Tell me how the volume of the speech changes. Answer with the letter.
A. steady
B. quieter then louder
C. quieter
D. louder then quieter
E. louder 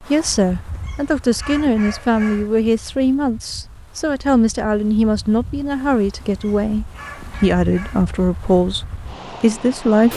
A.